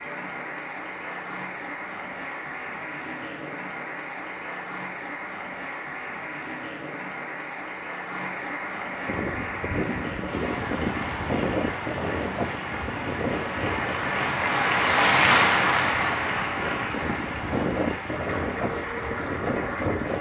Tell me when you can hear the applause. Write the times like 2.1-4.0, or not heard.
0.0-20.1.